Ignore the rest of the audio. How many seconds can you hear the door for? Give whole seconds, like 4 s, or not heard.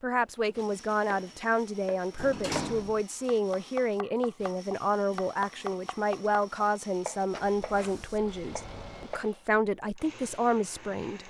3 s.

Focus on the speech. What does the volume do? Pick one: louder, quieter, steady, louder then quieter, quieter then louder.
steady.